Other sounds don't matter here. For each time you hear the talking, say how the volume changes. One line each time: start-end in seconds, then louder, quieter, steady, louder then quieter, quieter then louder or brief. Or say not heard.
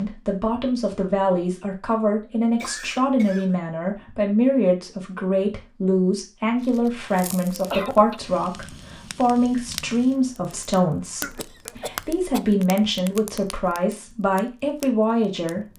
0.0-15.7 steady.